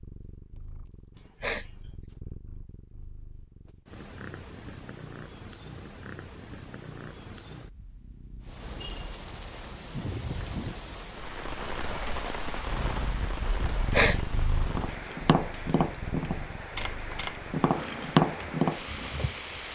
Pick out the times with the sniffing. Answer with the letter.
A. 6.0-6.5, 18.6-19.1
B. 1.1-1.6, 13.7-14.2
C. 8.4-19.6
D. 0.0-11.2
B.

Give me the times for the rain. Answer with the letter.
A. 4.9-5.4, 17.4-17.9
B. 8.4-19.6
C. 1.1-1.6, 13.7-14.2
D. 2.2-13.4
B.